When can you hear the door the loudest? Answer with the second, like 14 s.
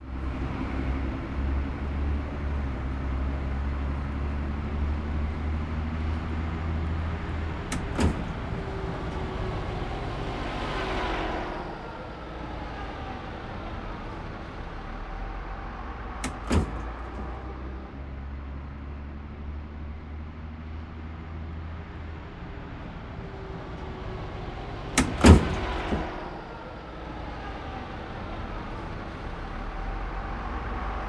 25 s.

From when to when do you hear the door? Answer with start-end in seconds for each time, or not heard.
7.7-8.3, 16.2-17.4, 24.9-26.1.